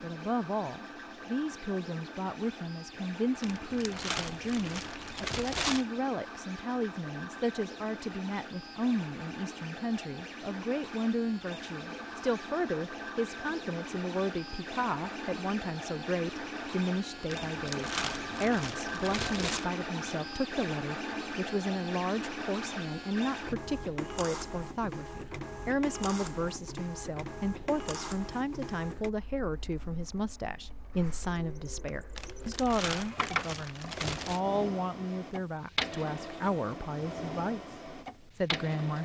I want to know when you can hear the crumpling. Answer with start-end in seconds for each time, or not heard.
3.4-5.8, 17.2-19.7, 32.1-34.4.